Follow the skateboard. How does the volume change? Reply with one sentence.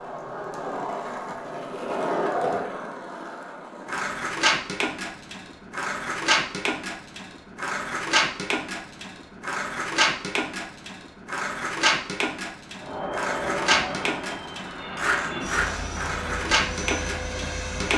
The loudness of the skateboard stays about the same.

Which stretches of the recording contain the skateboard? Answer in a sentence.
You can hear the skateboard from 0.0 to 17.9 s.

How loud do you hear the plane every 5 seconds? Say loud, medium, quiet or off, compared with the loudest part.
off, off, loud, loud.